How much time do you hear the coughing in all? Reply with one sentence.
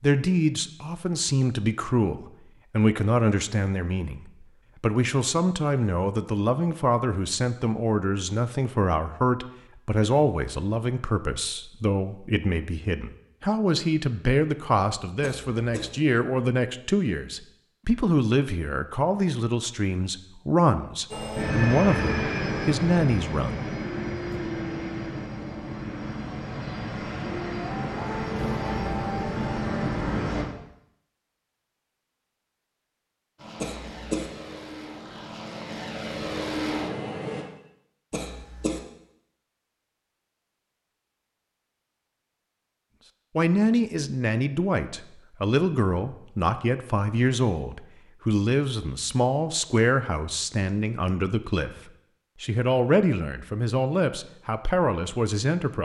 You can hear the coughing for 2 seconds altogether.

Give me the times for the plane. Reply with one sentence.
The plane can be heard from 21.1 to 30.4 s and from 33.4 to 37.5 s.